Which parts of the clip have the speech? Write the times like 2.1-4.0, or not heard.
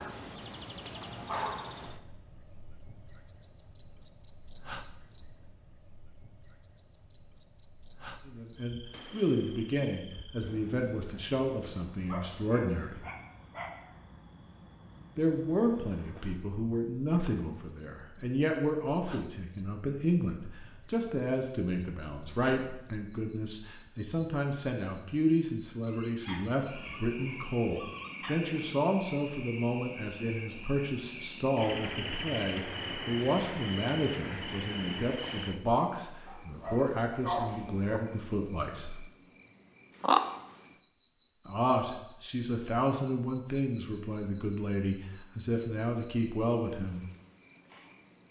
8.2-13.0, 15.2-39.0, 41.5-47.0.